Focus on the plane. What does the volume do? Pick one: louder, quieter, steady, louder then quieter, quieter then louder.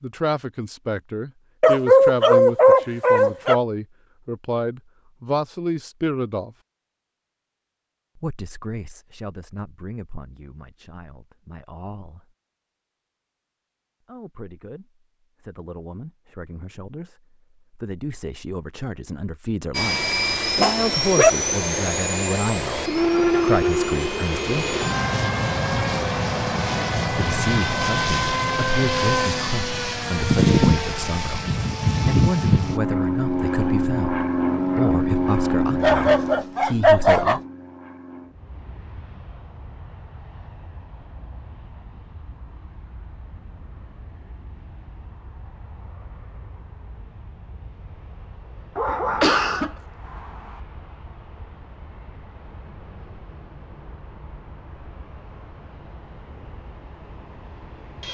quieter.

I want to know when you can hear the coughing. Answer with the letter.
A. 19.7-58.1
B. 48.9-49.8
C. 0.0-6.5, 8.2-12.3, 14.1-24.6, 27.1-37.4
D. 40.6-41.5
B.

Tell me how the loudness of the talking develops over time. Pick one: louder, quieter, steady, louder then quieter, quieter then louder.
quieter then louder.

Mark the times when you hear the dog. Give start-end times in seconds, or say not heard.
1.6-3.6, 20.6-21.3, 35.8-37.4, 48.8-50.6.